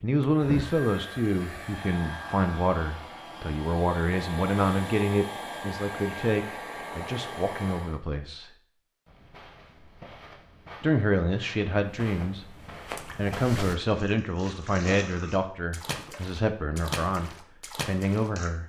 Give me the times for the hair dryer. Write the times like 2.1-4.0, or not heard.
0.2-8.0.